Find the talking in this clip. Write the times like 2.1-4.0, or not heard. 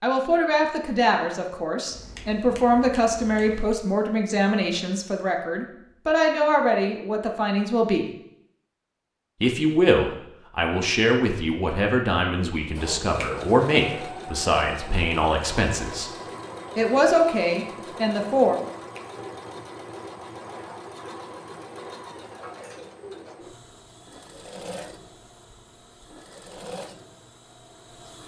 0.0-8.1, 9.4-16.1, 16.8-18.6.